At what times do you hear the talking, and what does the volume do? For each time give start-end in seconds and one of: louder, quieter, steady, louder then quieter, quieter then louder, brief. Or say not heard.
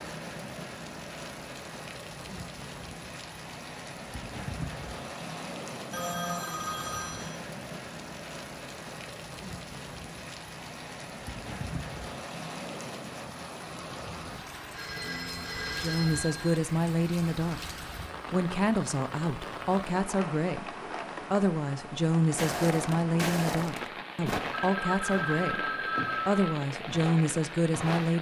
15.8-17.6 brief
18.3-28.1 steady.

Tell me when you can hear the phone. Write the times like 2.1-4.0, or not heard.
5.9-7.4, 14.7-16.6, 24.5-26.4.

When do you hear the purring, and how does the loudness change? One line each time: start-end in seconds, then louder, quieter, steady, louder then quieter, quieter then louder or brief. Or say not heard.
not heard.